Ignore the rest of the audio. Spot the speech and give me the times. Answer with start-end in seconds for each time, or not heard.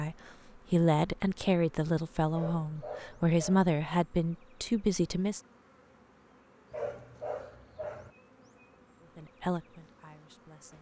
0.0-5.4, 9.0-10.7.